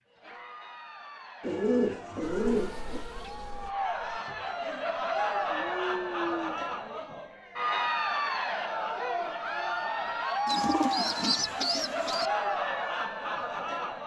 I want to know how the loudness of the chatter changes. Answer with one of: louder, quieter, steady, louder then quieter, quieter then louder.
louder.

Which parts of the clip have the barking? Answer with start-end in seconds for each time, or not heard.
5.5-7.0.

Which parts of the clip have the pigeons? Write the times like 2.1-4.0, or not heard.
1.4-3.0, 10.4-12.3.